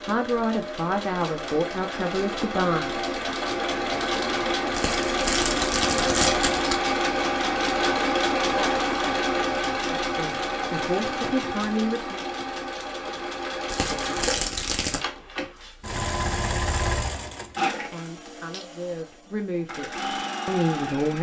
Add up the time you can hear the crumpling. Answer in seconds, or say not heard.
3 s.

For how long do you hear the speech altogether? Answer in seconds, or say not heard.
9 s.